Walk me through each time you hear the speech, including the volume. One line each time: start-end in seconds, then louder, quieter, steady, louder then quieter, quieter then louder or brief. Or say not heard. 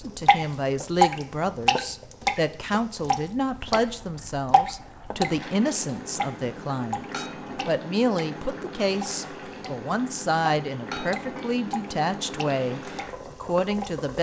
0.0-14.1 steady.